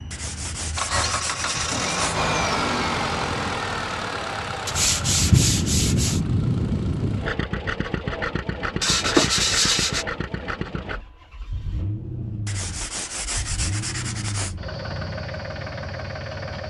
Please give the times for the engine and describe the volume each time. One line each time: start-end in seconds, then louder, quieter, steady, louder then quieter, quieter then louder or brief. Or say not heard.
0.0-16.6 quieter.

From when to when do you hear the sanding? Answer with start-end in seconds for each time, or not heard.
0.1-2.2, 4.7-6.2, 8.8-10.4, 12.4-14.6.